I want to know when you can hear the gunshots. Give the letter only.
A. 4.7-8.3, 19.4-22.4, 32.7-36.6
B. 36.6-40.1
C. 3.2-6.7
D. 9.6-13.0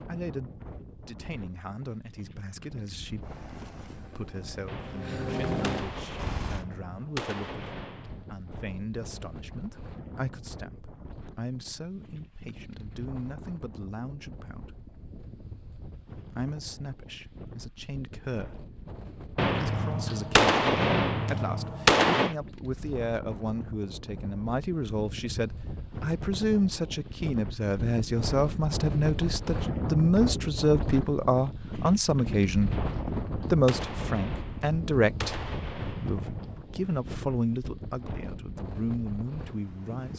A.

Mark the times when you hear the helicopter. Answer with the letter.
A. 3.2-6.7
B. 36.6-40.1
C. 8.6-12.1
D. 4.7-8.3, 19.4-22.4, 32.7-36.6
A.